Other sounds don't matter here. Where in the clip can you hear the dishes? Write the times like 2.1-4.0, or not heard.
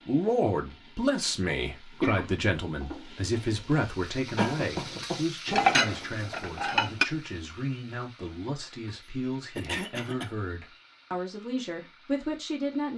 4.3-7.0.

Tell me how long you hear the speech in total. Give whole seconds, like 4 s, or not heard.
13 s.